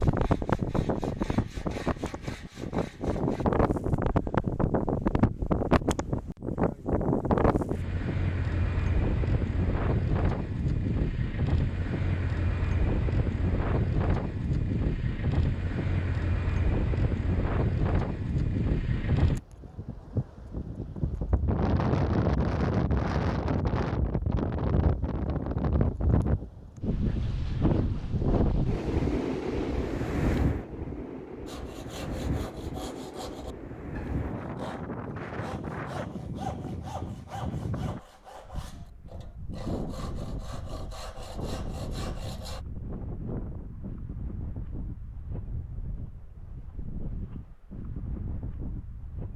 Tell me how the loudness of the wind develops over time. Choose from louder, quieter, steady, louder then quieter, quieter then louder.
quieter.